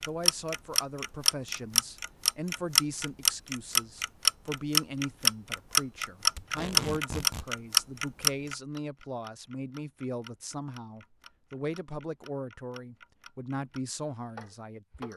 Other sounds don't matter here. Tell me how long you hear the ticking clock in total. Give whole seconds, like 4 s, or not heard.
15 s.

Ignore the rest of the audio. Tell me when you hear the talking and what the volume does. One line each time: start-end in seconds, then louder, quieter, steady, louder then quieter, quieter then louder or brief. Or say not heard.
0.1-15.1 steady.